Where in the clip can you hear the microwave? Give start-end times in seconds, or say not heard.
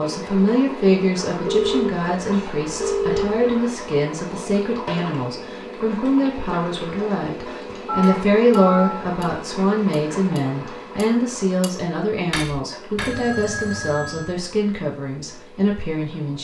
not heard.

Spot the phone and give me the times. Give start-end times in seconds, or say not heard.
1.4-3.4, 7.8-9.1, 12.9-14.3.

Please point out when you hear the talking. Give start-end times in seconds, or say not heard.
0.0-16.3.